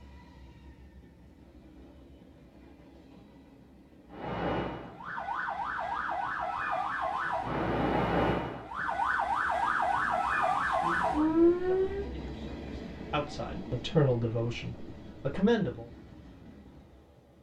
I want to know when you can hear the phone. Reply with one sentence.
You can't hear the phone here.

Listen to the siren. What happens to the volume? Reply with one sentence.
The loudness of the siren goes up.